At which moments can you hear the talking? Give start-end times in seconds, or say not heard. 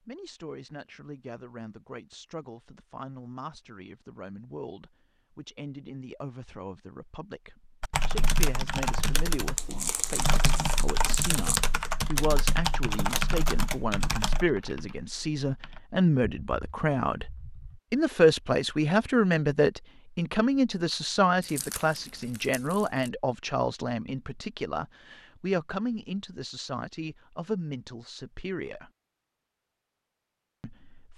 0.1-17.3, 17.9-28.9, 30.6-31.1.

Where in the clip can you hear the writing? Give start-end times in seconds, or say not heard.
not heard.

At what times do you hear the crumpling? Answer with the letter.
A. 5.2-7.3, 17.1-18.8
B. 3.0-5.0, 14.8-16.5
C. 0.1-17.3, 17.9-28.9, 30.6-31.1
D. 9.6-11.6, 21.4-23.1
D.